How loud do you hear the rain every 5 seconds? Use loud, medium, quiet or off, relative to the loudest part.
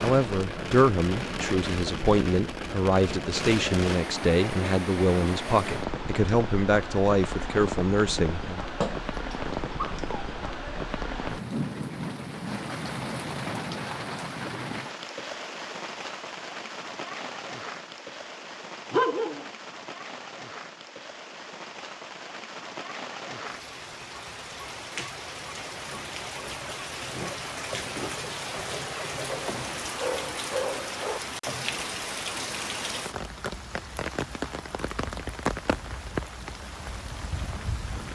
loud, loud, loud, medium, medium, loud, loud, loud.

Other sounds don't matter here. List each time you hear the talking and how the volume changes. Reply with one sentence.
You can hear the talking from 0.0 to 8.6 s, at a steady volume.